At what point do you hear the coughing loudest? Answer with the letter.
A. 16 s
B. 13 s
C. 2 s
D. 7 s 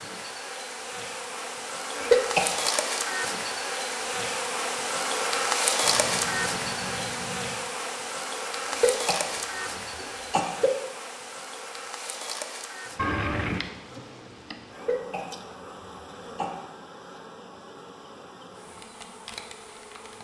C.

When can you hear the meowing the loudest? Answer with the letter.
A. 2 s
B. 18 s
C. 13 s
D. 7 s
C.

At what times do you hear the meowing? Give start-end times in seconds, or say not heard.
5.8-7.6, 12.9-13.7.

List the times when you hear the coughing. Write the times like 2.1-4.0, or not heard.
1.9-2.5, 8.7-10.7, 14.7-16.5.